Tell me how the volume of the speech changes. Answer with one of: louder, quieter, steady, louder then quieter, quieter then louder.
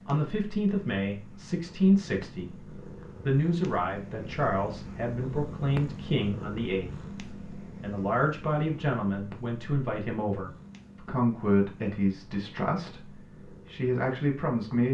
steady.